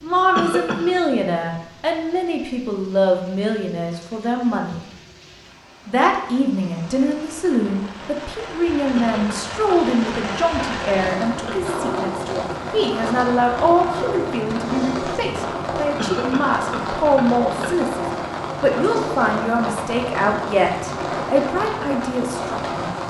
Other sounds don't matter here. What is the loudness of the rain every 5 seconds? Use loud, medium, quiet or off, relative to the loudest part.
quiet, medium, loud, loud, loud.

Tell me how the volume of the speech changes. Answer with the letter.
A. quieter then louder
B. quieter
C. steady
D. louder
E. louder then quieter
C.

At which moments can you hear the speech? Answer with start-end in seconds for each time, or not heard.
0.0-4.8, 5.8-22.8.